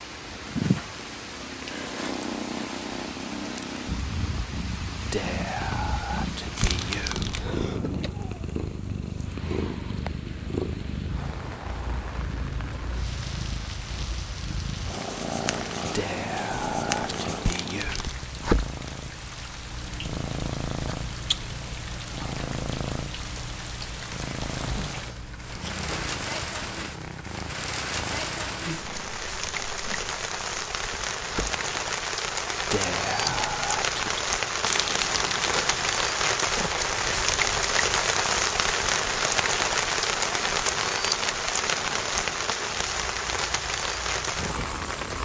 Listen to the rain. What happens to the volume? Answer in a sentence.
The volume of the rain goes up.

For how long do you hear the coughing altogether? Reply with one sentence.
The coughing can be heard for 3 seconds in total.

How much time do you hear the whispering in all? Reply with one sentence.
You can hear the whispering for 6 seconds altogether.